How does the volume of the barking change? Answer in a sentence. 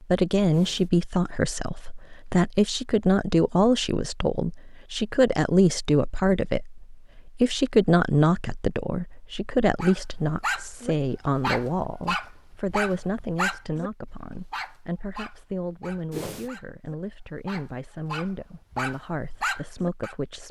The volume of the barking goes down, then up.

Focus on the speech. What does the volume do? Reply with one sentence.
The loudness of the speech goes down.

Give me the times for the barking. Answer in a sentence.
The barking can be heard from 9.8 to 20.1 s.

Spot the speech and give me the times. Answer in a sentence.
You can hear the speech from 0.0 to 20.4 s.